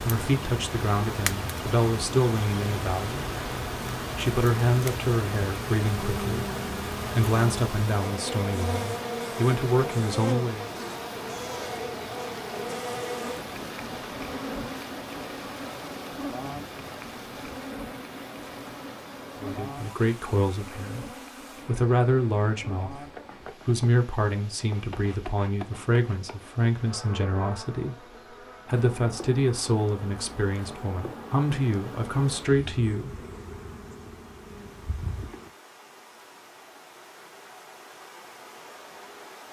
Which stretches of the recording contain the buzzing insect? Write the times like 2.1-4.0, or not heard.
0.0-35.5.